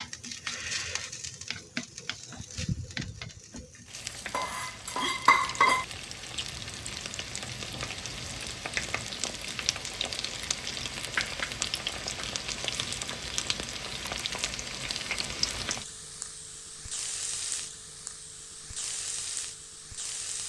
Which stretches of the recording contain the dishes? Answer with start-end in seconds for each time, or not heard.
4.3-5.8.